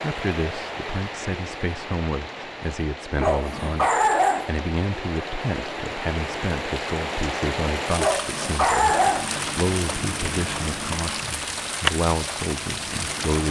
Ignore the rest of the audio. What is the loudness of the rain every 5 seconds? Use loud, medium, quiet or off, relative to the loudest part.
medium, loud, loud.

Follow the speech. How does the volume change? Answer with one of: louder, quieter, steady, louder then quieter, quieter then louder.
steady.